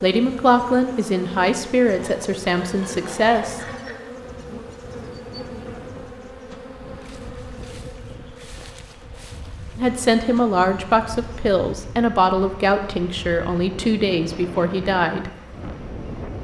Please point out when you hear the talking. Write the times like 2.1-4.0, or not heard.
0.0-3.6, 9.8-15.3.